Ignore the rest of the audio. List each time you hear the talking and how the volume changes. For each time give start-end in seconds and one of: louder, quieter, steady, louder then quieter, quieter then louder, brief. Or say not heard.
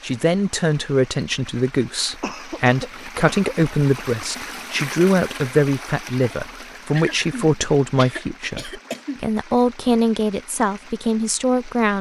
0.0-11.9 steady.